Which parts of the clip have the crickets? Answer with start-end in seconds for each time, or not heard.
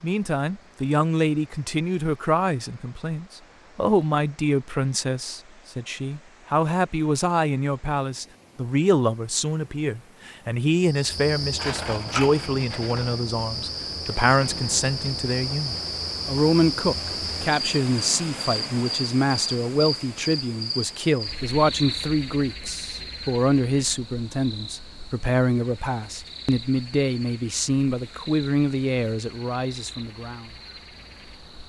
10.8-31.6.